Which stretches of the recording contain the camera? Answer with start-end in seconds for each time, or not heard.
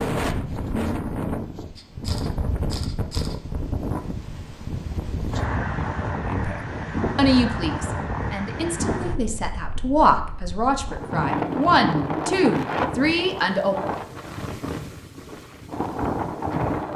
1.8-3.4.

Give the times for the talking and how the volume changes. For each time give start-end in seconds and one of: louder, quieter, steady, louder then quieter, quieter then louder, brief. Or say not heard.
6.2-13.8 quieter then louder.